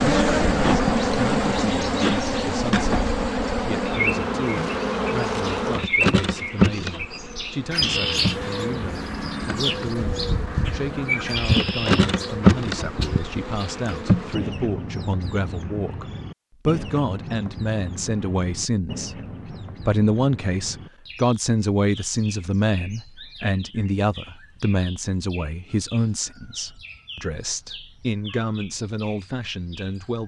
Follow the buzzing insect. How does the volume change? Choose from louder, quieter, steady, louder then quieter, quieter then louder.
quieter then louder.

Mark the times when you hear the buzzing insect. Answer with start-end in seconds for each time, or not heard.
0.0-14.3.